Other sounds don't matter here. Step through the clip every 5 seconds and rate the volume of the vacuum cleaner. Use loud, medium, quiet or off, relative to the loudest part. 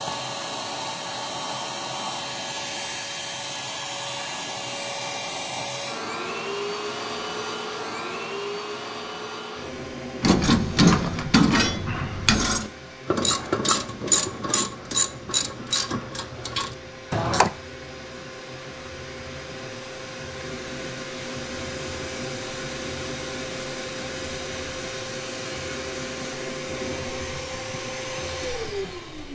loud, loud, medium, medium, loud, loud.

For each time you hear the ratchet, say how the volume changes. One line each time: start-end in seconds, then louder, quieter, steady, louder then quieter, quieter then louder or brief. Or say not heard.
10.2-17.5 quieter.